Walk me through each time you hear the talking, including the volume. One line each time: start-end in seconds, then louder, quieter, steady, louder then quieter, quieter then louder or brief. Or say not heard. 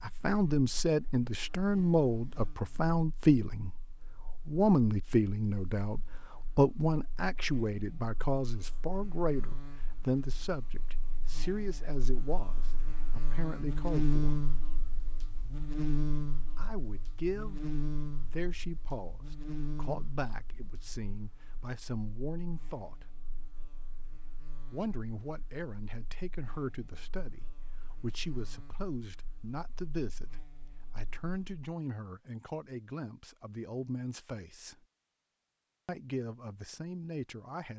0.0-14.3 quieter
16.6-23.1 quieter then louder
24.7-34.9 steady
35.9-37.7 brief.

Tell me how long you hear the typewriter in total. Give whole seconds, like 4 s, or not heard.
not heard.